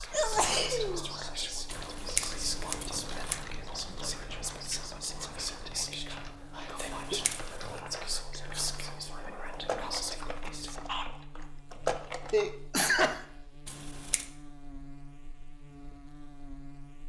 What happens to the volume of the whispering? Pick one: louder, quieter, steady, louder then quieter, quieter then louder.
steady.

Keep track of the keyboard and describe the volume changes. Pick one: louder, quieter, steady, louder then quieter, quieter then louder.
louder.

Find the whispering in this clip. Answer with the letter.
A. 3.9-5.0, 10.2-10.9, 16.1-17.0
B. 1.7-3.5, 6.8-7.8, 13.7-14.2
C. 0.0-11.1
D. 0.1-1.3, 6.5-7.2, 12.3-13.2
C.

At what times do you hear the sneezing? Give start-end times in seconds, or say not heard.
0.1-1.3, 6.5-7.2, 12.3-13.2.